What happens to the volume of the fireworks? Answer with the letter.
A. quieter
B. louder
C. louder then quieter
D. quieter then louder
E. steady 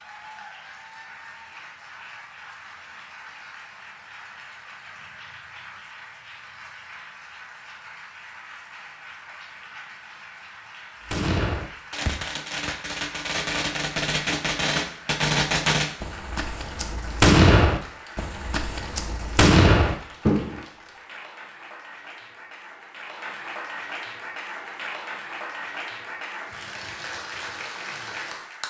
B.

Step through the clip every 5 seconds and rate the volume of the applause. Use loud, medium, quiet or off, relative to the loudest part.
medium, medium, medium, medium, loud, loud.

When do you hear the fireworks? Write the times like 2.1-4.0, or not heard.
11.1-20.6.